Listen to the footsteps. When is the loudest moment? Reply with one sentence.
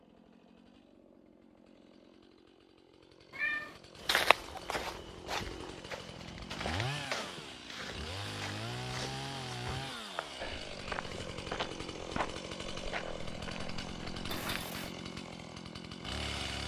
The volume of the footsteps peaks at 4 seconds.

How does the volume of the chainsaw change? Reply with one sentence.
The volume of the chainsaw goes up.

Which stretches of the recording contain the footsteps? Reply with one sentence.
You can hear the footsteps from 4.0 to 14.7 s.